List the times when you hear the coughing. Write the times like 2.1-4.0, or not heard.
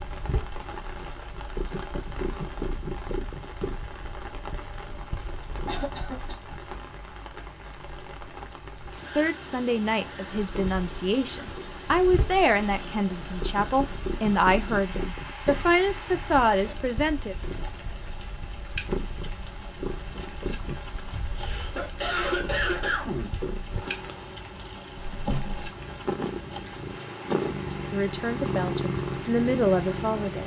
5.7-6.3, 15.4-16.6, 20.9-23.4.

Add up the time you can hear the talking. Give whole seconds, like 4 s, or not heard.
11 s.